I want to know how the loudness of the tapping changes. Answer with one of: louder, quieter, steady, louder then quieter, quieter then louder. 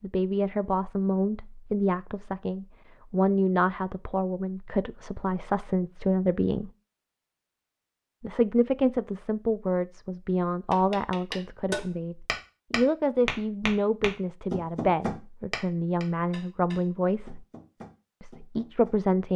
quieter.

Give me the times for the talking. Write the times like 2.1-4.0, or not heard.
0.0-6.7, 8.2-17.4, 18.2-19.3.